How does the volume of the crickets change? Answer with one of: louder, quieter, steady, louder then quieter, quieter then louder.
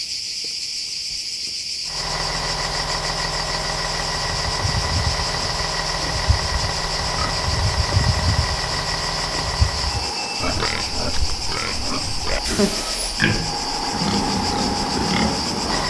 steady.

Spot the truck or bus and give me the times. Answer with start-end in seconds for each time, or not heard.
1.9-15.8.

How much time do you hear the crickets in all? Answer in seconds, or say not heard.
16 s.